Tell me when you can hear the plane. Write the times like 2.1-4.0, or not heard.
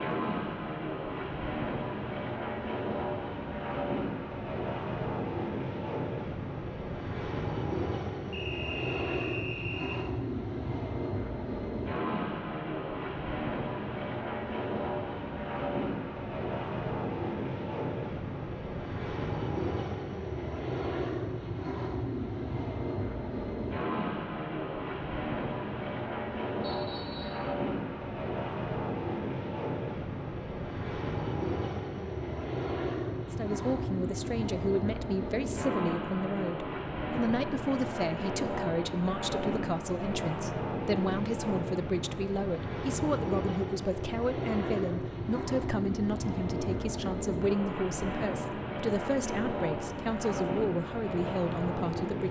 0.0-52.2.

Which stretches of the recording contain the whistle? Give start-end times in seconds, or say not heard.
8.3-10.0, 26.6-27.4.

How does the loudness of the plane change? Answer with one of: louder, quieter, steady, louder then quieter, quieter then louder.
steady.